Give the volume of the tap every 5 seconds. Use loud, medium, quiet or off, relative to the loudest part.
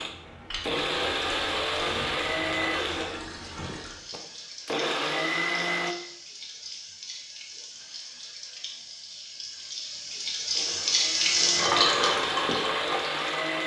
quiet, quiet, loud.